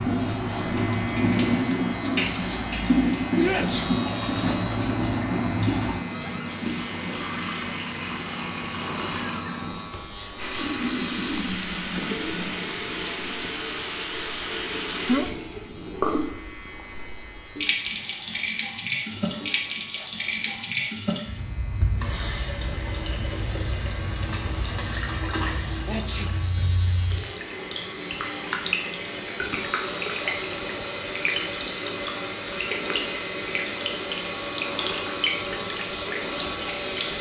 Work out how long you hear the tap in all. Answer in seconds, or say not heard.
37 s.